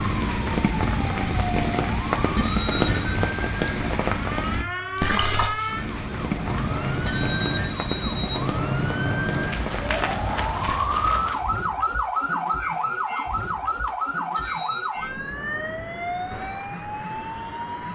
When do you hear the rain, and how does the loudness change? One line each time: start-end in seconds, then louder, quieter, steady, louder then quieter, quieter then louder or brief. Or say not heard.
0.0-10.8 quieter.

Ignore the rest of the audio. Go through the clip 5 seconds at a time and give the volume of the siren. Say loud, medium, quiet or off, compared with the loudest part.
medium, loud, loud, medium.